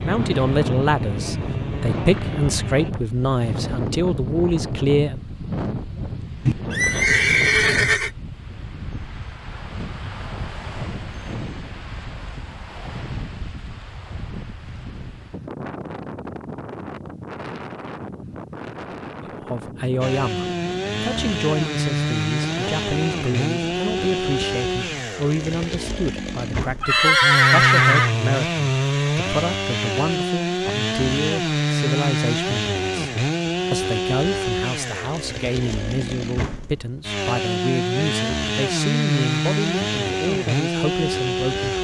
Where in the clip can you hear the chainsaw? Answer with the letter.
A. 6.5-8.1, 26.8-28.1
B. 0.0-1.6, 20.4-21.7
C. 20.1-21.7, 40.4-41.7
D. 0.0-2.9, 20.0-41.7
D.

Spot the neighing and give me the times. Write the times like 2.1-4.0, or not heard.
6.5-8.1, 26.8-28.1.